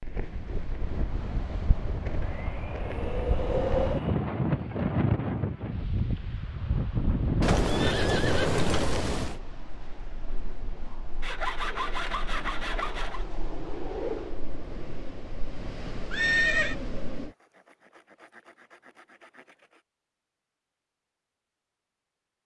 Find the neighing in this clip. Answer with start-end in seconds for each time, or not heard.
7.4-9.4, 16.1-16.8.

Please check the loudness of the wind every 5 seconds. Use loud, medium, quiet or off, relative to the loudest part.
loud, loud, medium, medium, off.